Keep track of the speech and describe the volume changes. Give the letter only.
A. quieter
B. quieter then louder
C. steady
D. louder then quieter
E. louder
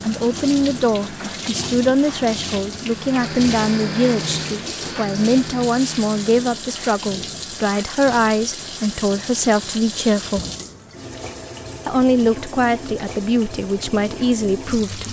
C.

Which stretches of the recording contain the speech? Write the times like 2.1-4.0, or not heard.
0.0-10.4, 11.8-15.0.